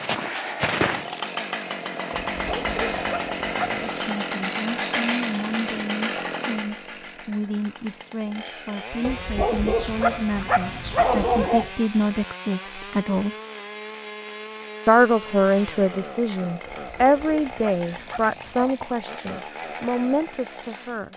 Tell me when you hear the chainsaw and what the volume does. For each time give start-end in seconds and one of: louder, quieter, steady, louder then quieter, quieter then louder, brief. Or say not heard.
0.0-21.1 quieter.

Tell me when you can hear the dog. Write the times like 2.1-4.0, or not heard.
2.3-4.0, 9.0-11.7, 16.6-18.8.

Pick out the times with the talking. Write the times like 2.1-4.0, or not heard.
3.9-13.3, 14.8-21.1.